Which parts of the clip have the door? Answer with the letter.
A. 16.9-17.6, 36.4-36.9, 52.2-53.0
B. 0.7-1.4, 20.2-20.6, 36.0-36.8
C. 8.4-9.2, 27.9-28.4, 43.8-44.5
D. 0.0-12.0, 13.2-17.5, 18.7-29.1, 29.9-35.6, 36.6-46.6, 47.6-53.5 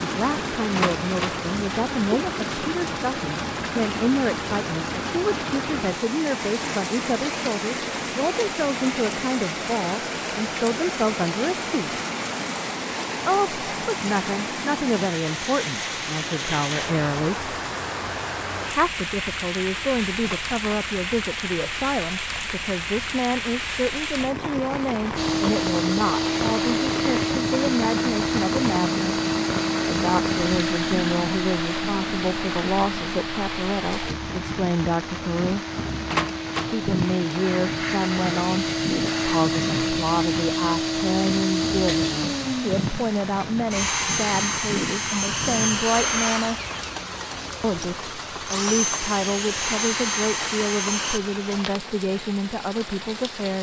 B.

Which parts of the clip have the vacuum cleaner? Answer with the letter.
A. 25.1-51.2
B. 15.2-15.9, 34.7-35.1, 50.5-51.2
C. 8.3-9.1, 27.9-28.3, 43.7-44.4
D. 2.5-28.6
A.